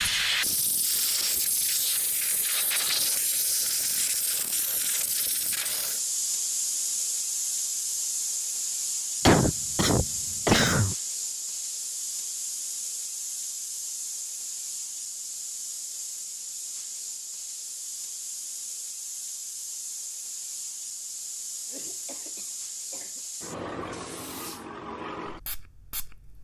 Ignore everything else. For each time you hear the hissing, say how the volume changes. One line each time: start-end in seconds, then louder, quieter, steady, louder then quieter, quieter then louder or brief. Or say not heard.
0.0-26.3 quieter.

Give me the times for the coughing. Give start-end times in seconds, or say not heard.
9.2-10.9, 21.7-23.2.